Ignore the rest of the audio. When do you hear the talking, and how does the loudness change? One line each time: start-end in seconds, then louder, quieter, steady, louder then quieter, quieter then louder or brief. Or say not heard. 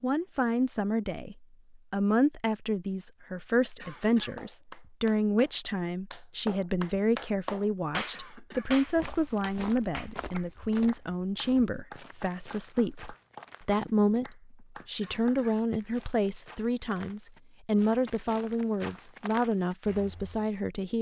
0.0-20.9 steady.